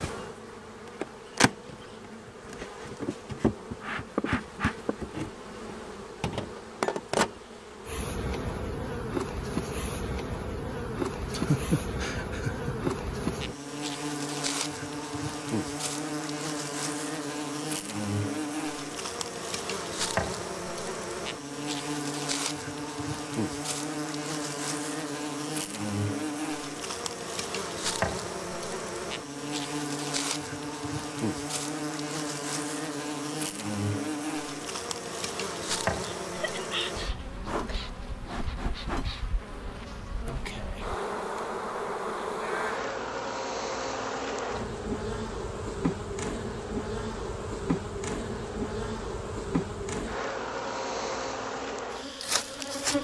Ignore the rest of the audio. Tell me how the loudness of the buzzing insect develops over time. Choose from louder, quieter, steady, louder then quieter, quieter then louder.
steady.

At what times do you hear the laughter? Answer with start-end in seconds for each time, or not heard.
11.3-12.9, 36.0-37.2.